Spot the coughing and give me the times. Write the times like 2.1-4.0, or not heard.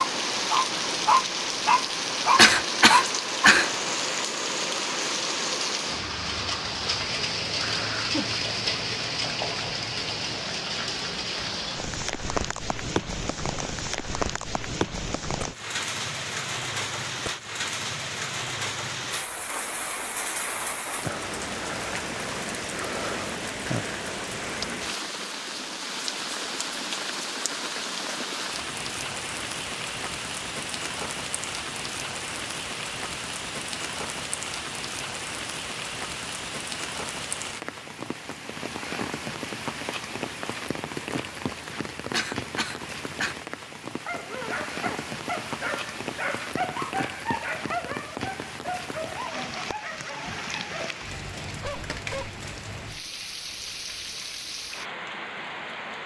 2.4-3.7, 42.1-43.4.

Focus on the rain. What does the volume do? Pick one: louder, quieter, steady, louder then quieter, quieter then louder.
quieter.